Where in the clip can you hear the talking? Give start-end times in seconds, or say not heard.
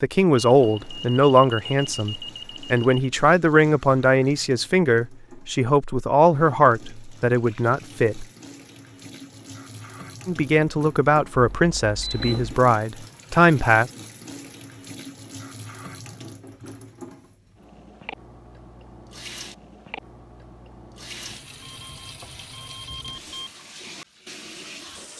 0.0-8.2, 10.2-13.9.